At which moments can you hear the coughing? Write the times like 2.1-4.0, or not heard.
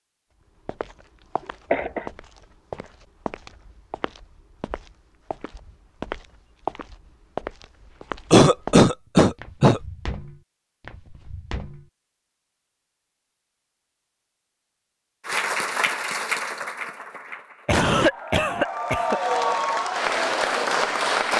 1.7-2.1, 8.3-9.8, 17.6-19.2.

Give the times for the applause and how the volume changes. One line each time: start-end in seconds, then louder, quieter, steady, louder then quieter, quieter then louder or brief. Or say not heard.
15.2-21.3 quieter then louder.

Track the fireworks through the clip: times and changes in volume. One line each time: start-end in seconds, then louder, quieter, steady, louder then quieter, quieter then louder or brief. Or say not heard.
not heard.